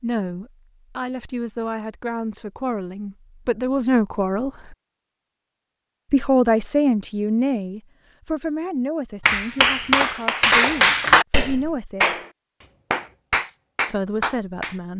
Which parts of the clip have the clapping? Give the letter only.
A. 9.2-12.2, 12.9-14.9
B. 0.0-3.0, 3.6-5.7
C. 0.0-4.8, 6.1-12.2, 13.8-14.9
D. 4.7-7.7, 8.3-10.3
A.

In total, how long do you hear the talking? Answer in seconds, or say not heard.
12 s.